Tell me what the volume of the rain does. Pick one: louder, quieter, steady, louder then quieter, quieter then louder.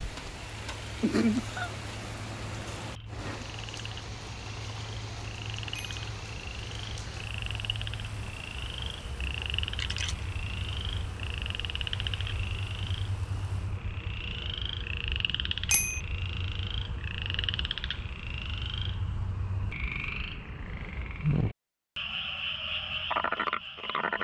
quieter.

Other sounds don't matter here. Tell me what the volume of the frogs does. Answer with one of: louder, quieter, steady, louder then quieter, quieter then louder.
louder.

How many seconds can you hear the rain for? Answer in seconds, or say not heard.
14 s.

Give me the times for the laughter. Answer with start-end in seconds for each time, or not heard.
1.0-1.7.